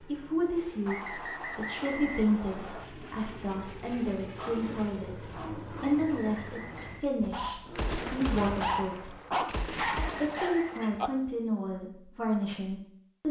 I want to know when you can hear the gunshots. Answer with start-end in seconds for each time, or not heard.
7.2-11.1.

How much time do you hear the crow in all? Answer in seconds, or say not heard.
not heard.